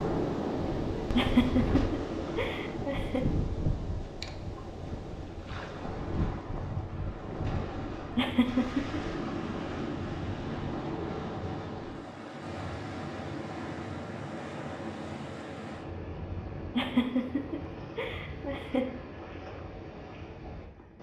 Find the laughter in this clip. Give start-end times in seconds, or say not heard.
1.1-3.2, 8.2-9.0, 16.8-18.9.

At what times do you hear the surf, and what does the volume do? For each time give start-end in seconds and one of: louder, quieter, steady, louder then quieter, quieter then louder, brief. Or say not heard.
0.0-20.9 quieter.